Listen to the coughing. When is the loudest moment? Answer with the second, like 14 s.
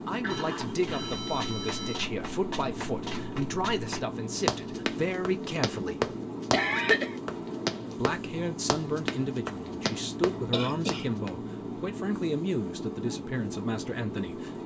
7 s.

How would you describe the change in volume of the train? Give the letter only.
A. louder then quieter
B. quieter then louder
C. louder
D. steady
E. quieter
D.